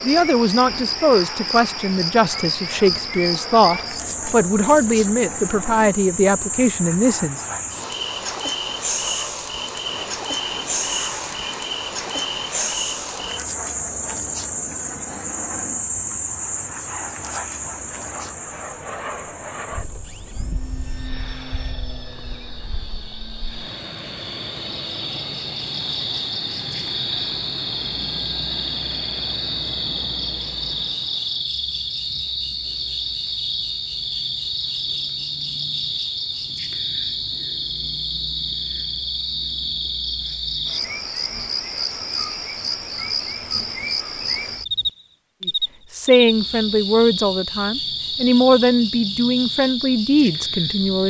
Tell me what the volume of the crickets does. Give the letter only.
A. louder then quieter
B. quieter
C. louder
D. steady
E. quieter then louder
D.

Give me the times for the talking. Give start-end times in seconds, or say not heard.
0.0-7.4, 45.5-51.0.